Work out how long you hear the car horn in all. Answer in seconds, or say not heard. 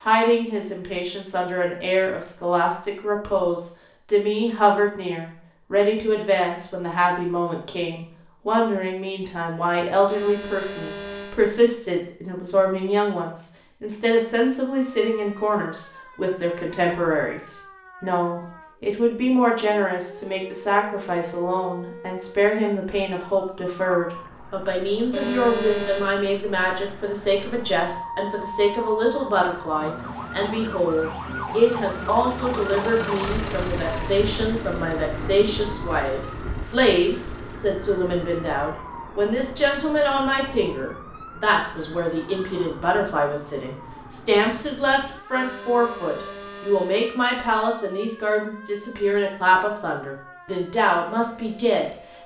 4 s.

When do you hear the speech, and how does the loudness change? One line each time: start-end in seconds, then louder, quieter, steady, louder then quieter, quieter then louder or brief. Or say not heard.
0.0-52.2 steady.